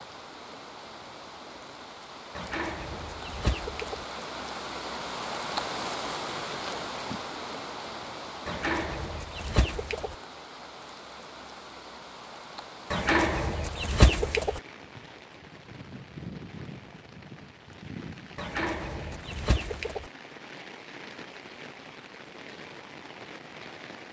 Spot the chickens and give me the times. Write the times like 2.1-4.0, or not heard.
2.4-4.0, 8.4-10.2, 12.9-14.6, 18.4-20.1.